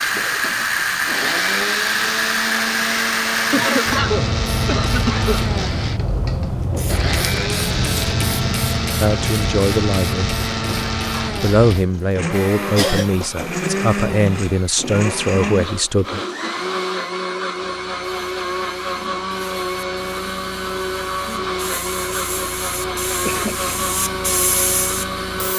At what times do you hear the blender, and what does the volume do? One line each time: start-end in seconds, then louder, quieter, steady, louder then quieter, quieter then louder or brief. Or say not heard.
0.0-25.5 steady.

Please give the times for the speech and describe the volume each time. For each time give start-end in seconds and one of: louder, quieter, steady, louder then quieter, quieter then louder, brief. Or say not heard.
9.0-10.3 brief
11.3-16.2 steady.